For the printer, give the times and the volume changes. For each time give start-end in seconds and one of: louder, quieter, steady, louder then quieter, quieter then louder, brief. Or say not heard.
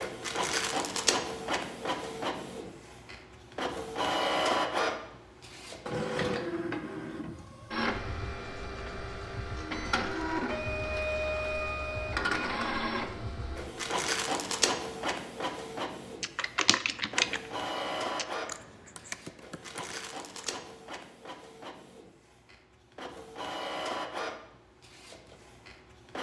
0.0-26.1 quieter.